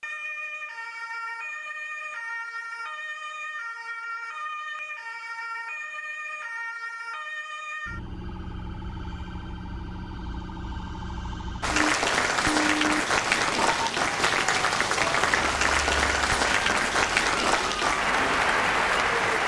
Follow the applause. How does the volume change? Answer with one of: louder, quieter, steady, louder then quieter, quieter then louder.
steady.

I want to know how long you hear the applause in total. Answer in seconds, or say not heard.
8 s.